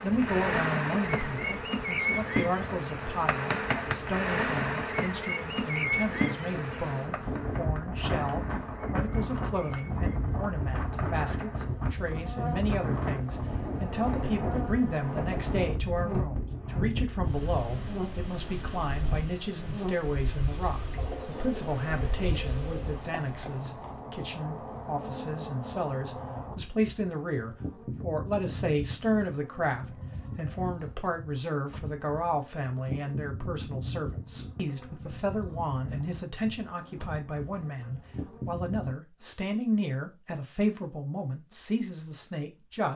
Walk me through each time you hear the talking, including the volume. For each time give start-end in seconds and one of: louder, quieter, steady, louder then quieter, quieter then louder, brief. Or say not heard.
0.0-42.9 steady.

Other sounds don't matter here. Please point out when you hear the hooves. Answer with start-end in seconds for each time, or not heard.
not heard.